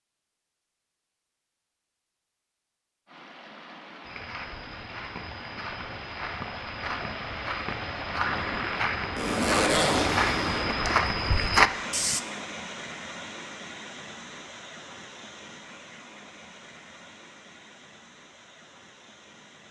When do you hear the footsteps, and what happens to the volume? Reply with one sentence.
You can hear the footsteps from 4.0 to 12.2 s, getting louder.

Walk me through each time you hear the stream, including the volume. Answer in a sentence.
You can hear the stream from 3.0 to 19.6 s, getting louder then quieter.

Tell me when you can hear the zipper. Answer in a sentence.
You can hear the zipper from 9.2 to 10.7 s.